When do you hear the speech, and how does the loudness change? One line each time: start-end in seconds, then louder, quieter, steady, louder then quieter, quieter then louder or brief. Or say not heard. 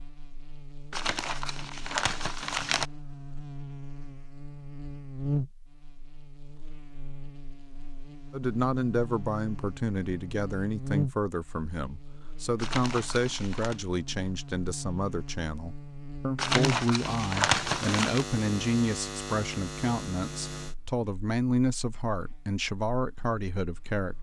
8.3-24.1 steady.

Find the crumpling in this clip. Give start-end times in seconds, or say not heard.
0.9-2.9, 12.6-13.8, 16.4-18.2.